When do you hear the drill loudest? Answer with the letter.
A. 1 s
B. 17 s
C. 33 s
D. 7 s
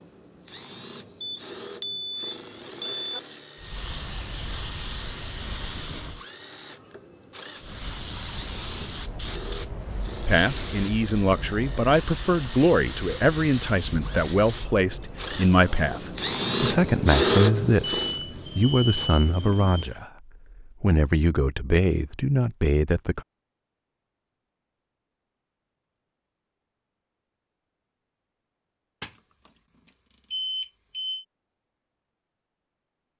B.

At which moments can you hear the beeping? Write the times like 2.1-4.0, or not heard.
1.2-3.2, 17.8-19.9, 29.0-29.5, 30.3-31.2.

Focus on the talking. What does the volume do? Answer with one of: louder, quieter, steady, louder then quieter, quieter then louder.
steady.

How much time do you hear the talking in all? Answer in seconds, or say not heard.
13 s.